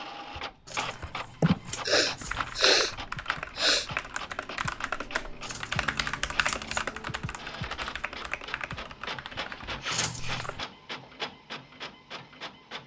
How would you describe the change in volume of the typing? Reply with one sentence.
The volume of the typing goes up, then down.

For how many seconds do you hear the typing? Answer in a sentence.
The typing can be heard for 10 seconds in total.